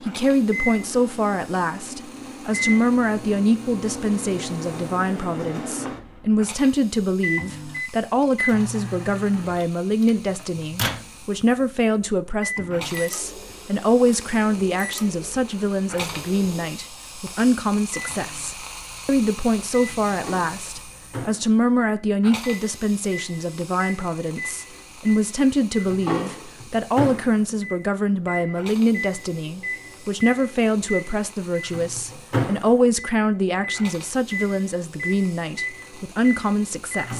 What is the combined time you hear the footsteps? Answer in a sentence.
The footsteps can't be heard in this clip.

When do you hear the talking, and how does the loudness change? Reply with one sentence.
You can hear the talking from 0.0 to 37.1 s, at a steady volume.